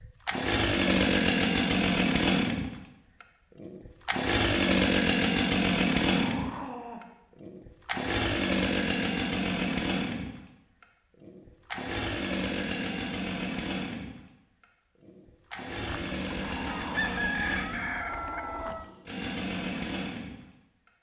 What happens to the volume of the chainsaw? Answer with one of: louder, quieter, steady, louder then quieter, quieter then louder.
quieter.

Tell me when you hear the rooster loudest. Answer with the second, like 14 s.
17 s.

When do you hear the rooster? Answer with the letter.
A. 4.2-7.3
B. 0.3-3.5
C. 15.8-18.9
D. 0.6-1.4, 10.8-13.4
C.